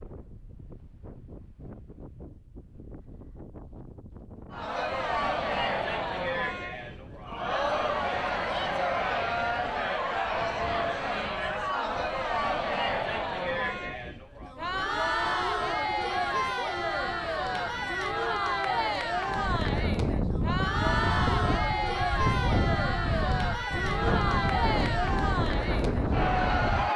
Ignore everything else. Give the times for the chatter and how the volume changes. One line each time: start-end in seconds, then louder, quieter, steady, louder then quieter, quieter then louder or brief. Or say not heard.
4.5-26.9 steady.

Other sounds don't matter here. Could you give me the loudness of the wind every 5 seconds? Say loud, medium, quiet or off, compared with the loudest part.
quiet, quiet, quiet, medium, loud, loud.